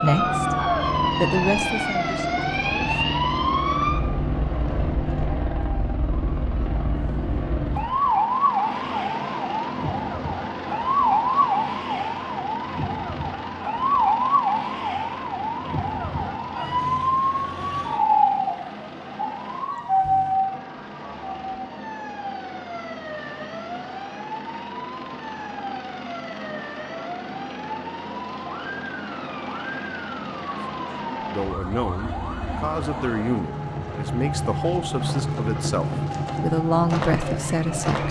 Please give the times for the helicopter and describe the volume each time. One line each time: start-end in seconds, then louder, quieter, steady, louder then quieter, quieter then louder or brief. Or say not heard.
0.0-38.0 quieter then louder.